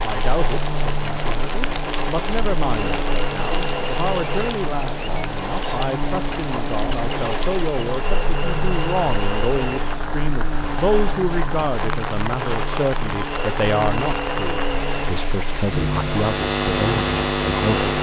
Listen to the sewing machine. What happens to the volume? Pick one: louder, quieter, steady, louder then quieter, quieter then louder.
steady.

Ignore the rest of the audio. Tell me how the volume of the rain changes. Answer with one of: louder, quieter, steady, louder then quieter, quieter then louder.
steady.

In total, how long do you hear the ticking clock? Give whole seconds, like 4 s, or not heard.
not heard.